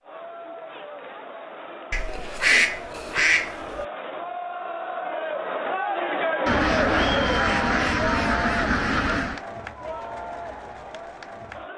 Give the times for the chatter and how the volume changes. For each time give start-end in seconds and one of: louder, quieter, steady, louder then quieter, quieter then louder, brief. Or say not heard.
0.0-11.7 louder then quieter.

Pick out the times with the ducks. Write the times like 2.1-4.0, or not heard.
1.9-3.9, 6.5-9.4.